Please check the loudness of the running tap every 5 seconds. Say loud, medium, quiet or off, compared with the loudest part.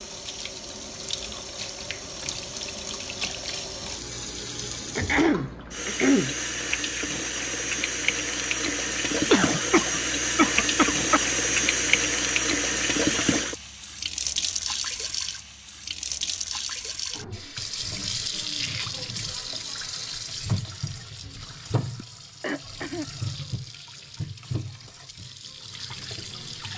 medium, loud, loud, medium, medium, quiet.